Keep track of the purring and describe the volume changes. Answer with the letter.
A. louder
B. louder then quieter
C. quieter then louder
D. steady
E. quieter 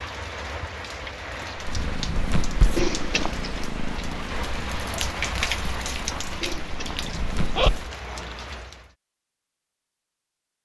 C.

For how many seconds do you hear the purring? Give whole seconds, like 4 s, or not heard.
6 s.